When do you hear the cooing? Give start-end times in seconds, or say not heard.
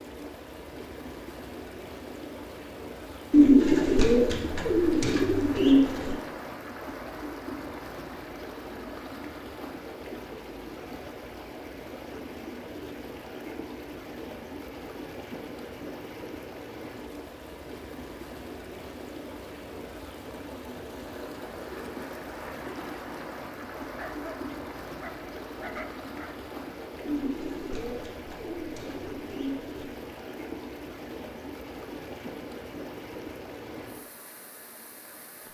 3.3-6.2, 27.1-29.8.